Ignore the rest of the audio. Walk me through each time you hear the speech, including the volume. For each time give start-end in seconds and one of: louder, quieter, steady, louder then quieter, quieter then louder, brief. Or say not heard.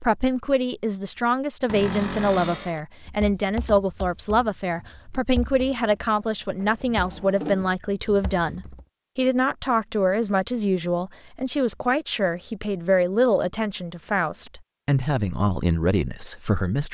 0.0-16.8 steady.